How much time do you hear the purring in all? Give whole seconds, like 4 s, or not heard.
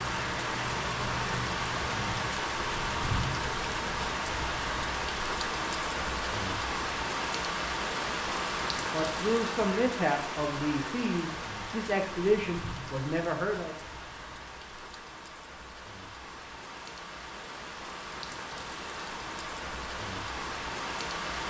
2 s.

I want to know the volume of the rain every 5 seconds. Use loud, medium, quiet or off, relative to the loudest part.
loud, loud, medium, medium, loud.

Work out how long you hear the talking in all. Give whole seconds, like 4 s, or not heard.
5 s.